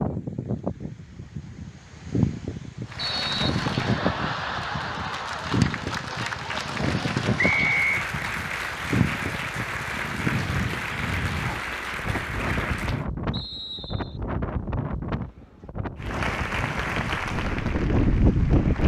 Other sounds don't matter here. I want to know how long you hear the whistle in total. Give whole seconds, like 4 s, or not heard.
2 s.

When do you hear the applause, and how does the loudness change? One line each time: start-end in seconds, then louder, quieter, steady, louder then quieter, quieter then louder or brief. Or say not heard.
2.9-13.1 steady
15.9-18.8 brief.